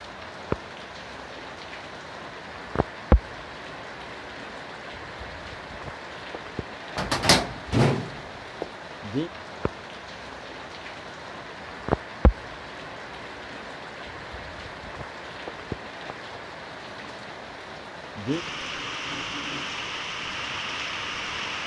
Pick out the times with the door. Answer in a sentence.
The door can be heard from 7.0 to 8.7 s.